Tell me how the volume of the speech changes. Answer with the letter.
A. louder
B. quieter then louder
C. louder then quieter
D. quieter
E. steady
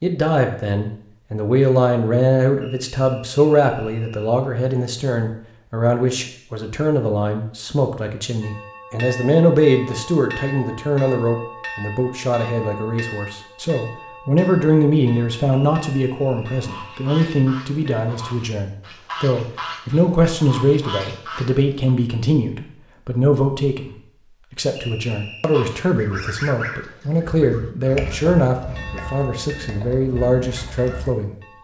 E.